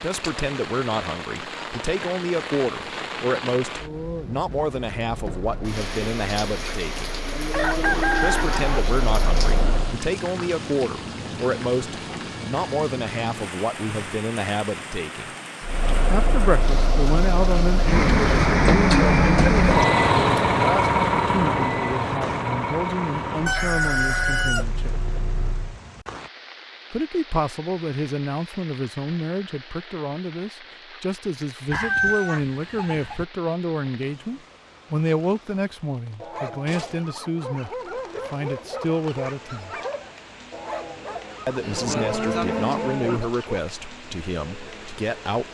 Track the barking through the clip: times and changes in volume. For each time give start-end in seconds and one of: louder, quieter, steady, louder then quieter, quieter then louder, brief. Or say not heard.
36.2-43.6 steady.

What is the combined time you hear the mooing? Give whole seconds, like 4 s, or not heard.
3 s.